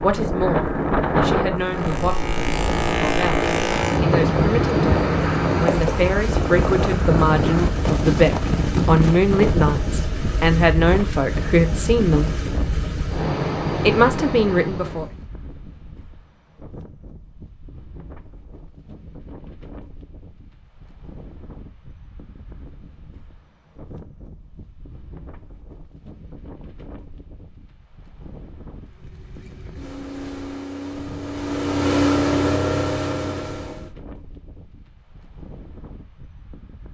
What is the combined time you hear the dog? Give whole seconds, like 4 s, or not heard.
not heard.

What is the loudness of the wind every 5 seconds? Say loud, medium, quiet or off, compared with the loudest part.
loud, loud, medium, quiet, quiet, quiet, quiet, quiet.